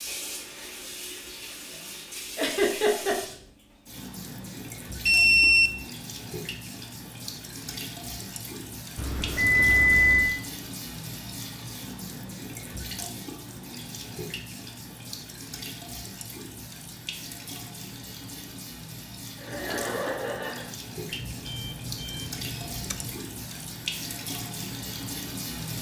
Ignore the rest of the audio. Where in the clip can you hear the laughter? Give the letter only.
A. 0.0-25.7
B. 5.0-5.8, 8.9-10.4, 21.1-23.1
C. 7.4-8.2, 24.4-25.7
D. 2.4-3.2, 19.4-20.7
D.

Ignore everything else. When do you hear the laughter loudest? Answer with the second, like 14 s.
3 s.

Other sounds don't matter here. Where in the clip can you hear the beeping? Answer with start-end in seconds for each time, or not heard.
5.0-5.8, 8.9-10.4, 21.1-23.1.